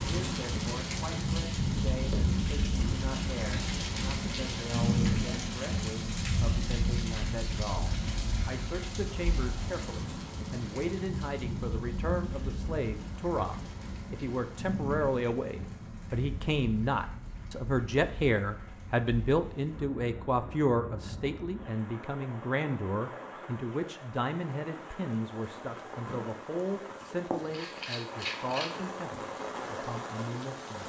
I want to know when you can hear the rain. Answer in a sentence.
You can hear the rain from 0.0 to 30.8 s.